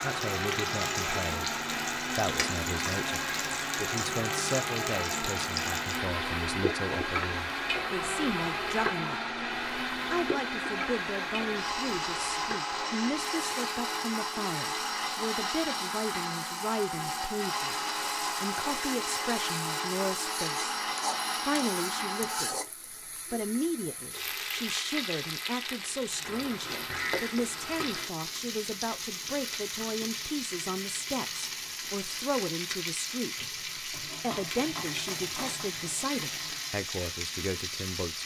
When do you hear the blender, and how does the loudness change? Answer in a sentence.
The blender can be heard from 0.0 to 22.6 s, at a steady volume.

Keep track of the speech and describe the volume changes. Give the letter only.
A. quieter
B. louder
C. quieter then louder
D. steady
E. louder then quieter
D.